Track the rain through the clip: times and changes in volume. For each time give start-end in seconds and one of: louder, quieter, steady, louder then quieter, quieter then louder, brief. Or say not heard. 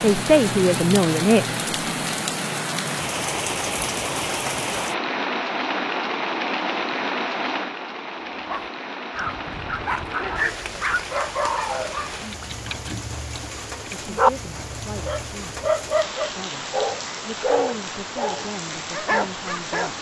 0.0-19.9 quieter.